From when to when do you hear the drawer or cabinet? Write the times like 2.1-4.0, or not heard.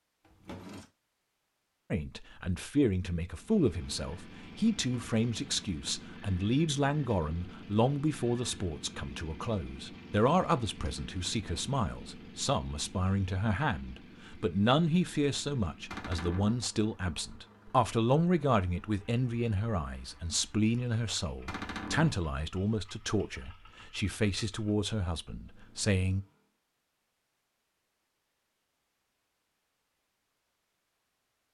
0.2-0.9, 15.9-16.6, 21.4-22.2.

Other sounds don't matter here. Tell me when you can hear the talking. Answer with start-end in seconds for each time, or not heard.
1.9-26.2.